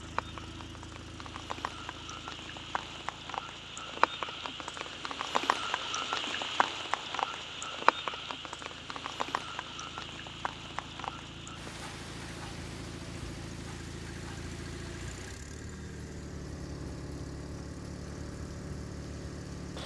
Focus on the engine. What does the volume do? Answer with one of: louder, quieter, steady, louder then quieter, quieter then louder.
quieter then louder.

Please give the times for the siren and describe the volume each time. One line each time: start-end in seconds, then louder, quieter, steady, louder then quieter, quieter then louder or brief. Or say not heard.
not heard.